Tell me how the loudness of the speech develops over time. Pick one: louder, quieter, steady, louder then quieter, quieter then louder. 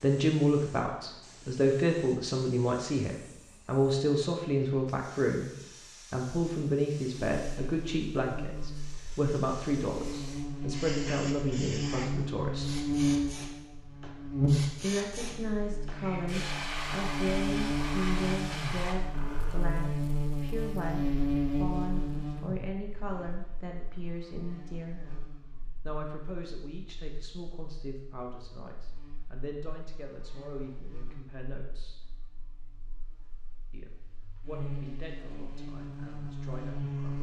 quieter.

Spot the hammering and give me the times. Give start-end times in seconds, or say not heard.
not heard.